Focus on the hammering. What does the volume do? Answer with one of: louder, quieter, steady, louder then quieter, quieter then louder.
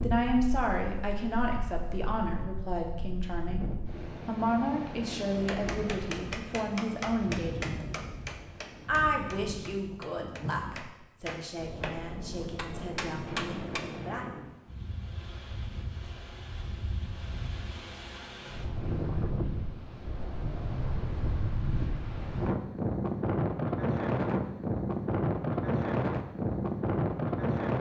quieter then louder.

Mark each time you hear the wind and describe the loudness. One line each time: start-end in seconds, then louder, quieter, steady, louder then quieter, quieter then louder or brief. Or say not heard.
0.0-27.7 louder.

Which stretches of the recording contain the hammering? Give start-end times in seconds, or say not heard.
5.5-13.8.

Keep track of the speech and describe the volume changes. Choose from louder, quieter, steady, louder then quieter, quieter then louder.
quieter.